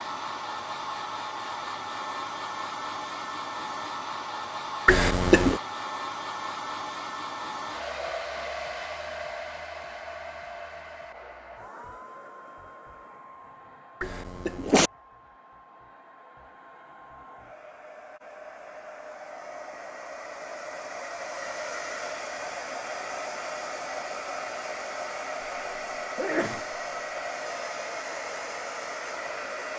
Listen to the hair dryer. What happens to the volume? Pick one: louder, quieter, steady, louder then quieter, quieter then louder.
quieter then louder.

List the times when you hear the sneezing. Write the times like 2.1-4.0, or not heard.
4.8-5.6, 14.0-14.9, 26.1-27.2.